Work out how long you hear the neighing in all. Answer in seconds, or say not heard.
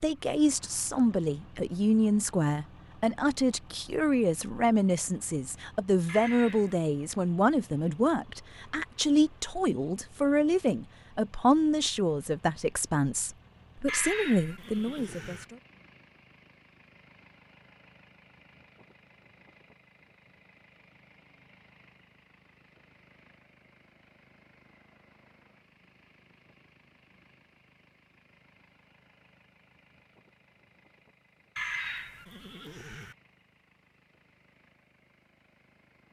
4 s.